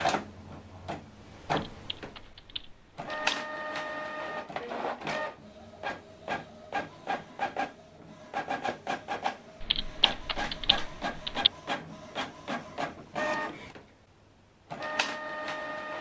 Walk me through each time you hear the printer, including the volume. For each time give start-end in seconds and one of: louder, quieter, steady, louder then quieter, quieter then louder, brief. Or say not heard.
0.0-15.9 steady.